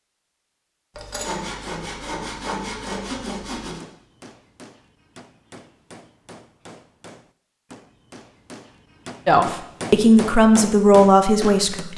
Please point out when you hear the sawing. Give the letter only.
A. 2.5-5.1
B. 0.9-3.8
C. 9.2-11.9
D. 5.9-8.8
B.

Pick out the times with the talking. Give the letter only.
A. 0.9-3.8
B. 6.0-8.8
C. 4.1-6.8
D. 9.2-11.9
D.